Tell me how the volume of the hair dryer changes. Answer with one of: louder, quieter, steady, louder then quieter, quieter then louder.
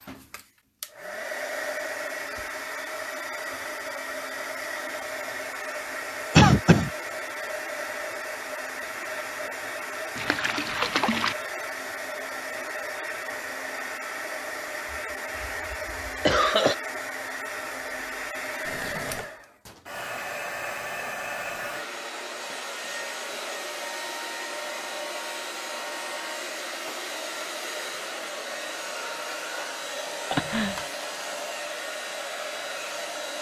steady.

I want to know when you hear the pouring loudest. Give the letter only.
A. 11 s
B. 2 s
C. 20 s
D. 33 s
A.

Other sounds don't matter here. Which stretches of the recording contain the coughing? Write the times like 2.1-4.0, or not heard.
6.3-6.9, 14.9-16.8, 30.3-30.9.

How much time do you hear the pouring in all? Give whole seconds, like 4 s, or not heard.
2 s.